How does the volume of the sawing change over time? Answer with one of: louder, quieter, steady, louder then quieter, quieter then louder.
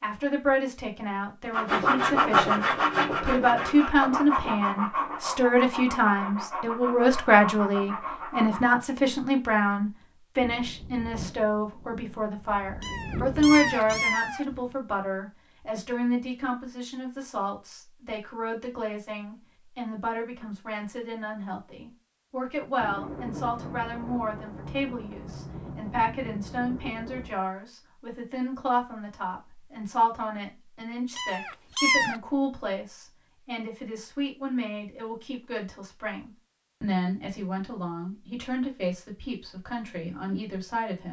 quieter.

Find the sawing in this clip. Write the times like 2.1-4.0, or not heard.
1.5-8.8.